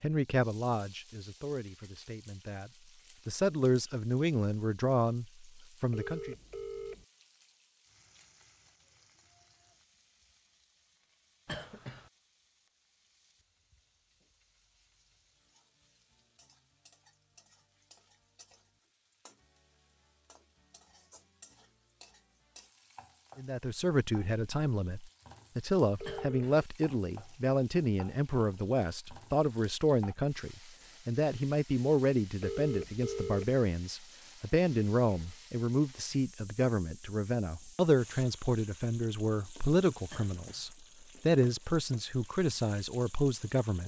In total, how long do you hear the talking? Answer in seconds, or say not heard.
27 s.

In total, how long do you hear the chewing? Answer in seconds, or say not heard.
not heard.